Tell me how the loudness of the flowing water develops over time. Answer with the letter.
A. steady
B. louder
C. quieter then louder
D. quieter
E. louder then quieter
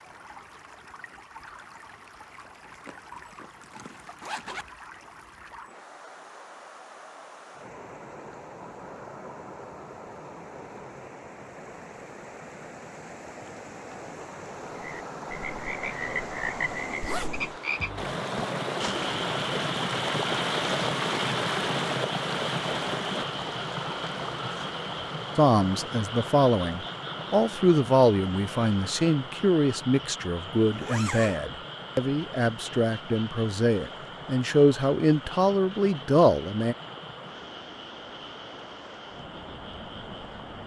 E.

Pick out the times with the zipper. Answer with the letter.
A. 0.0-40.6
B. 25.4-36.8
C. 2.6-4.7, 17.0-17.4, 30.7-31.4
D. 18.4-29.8
C.